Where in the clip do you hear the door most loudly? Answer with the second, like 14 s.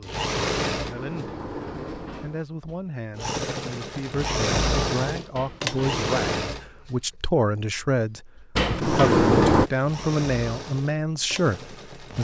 9 s.